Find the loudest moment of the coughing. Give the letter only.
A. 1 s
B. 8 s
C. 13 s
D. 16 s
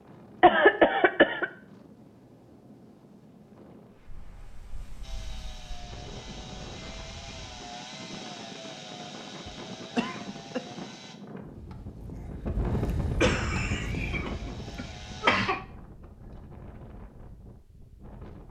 A.